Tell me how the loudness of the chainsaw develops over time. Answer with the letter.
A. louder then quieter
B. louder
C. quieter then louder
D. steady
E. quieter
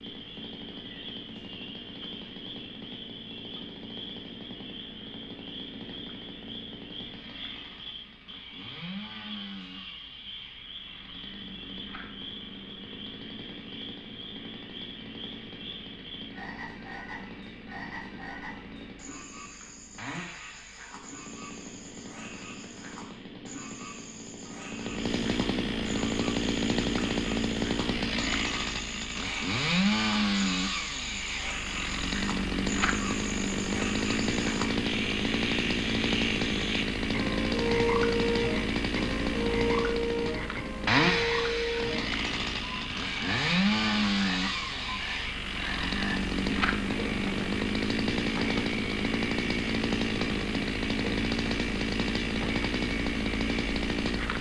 B.